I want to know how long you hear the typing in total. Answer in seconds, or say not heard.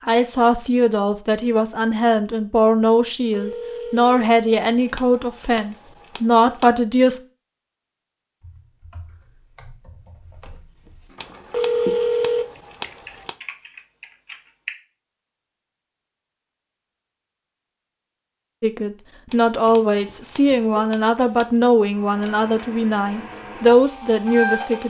6 s.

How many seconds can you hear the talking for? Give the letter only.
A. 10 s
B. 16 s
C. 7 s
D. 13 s
D.